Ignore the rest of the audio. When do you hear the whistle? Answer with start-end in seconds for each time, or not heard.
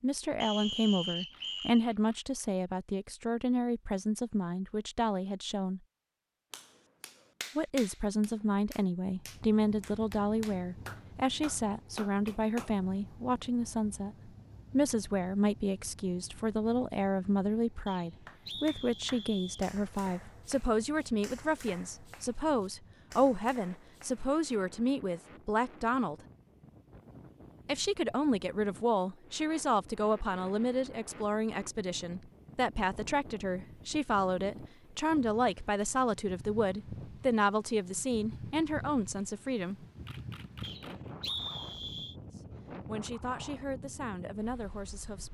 0.4-1.9, 17.9-19.6, 40.6-42.1.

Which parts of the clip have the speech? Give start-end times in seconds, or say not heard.
0.0-5.8, 7.5-26.1, 27.6-39.8, 42.4-45.2.